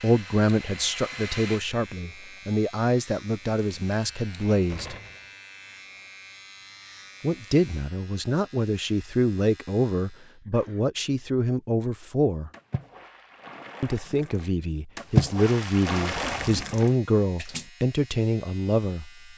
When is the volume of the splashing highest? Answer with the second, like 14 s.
15 s.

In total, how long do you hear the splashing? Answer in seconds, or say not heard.
5 s.